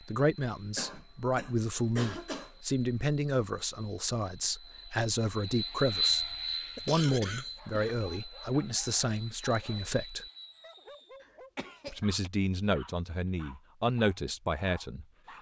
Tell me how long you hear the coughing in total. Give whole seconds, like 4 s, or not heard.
5 s.